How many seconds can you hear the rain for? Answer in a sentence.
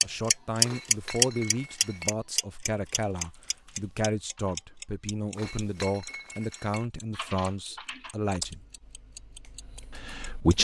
You can't hear the rain here.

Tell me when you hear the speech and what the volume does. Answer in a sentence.
You can hear the speech from 0.0 to 8.7 s, at a steady volume; and briefly from 9.9 to 10.5 s.